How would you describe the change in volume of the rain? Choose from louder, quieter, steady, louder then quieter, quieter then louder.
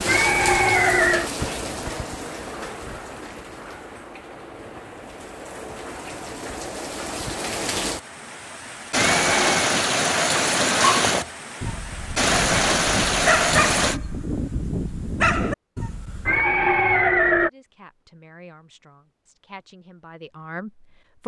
quieter then louder.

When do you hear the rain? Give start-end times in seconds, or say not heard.
0.0-14.0.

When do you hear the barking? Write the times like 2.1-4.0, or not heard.
10.8-16.4.